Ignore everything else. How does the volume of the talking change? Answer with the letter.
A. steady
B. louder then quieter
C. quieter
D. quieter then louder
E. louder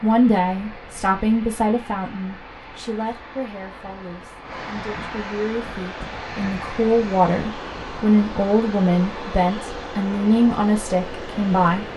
D.